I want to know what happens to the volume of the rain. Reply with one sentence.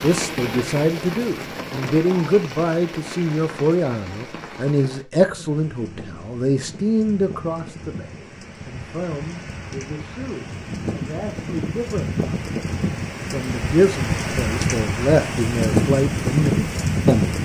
The loudness of the rain goes down, then up.